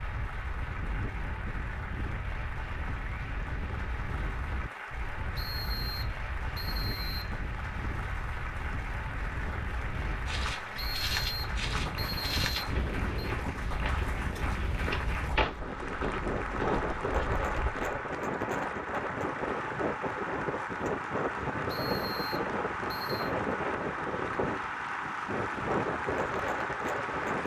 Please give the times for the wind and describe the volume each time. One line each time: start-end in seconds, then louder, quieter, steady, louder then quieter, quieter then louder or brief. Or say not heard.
0.0-27.4 louder.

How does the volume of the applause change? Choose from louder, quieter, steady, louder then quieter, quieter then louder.
louder.